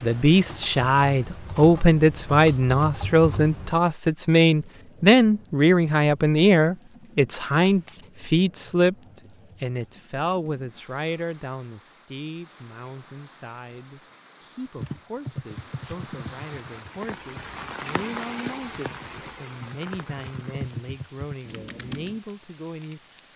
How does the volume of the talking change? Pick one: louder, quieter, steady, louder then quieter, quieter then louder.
quieter.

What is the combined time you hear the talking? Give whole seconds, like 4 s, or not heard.
23 s.